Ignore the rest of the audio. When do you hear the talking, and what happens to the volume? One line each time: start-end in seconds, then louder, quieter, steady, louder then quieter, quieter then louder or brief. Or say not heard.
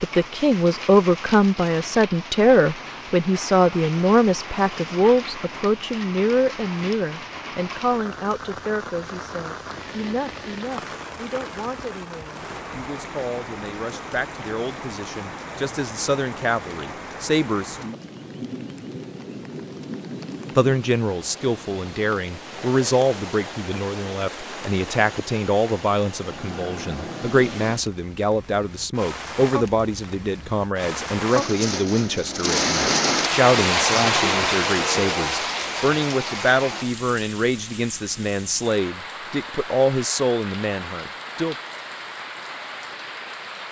0.0-17.8 quieter then louder
20.6-41.5 steady.